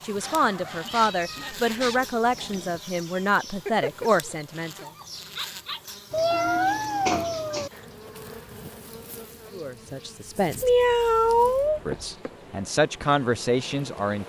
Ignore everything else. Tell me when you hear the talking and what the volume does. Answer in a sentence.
You can hear the talking from 0.1 to 4.8 s, at a steady volume; briefly from 9.5 to 10.7 s; and briefly from 11.8 to 14.2 s.